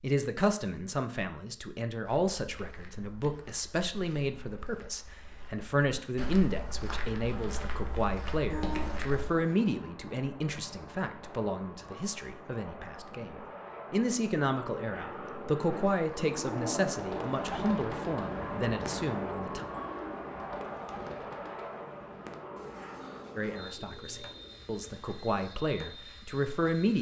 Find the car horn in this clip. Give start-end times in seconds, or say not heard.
8.5-9.6.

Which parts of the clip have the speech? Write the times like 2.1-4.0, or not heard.
0.0-19.6, 23.4-26.9.